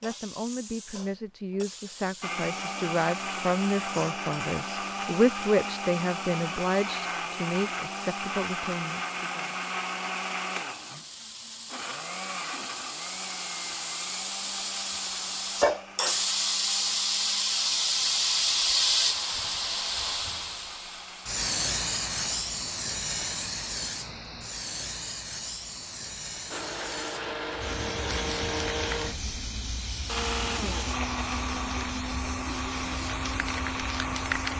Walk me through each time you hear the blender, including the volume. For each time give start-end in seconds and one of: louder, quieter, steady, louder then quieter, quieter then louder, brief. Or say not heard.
2.2-22.5 quieter
26.5-34.5 steady.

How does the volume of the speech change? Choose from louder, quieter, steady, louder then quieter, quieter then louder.
louder then quieter.